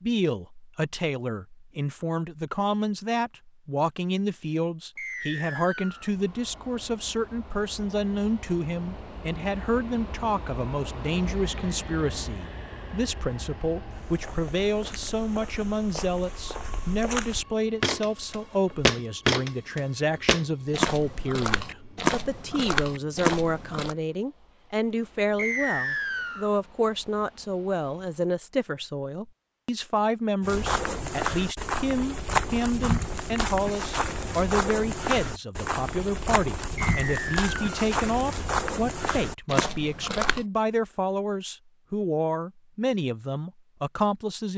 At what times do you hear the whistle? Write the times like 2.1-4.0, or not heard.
5.0-6.1, 25.4-26.5, 36.8-37.6.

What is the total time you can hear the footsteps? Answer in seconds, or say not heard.
20 s.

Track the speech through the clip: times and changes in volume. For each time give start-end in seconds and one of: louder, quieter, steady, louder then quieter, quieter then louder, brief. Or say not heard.
0.0-44.5 steady.